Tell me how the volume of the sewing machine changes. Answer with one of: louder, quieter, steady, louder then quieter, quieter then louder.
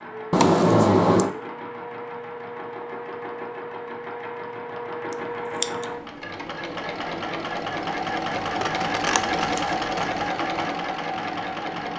louder.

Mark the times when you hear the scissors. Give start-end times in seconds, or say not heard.
0.3-1.3, 5.1-5.8, 8.4-10.2.